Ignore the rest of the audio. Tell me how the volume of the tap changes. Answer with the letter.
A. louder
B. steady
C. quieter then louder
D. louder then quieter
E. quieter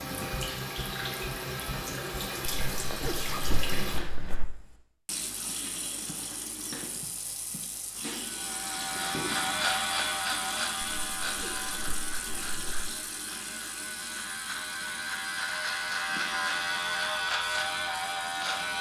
E.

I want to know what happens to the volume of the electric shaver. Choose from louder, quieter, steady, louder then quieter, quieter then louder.
quieter then louder.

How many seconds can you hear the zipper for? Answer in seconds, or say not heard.
4 s.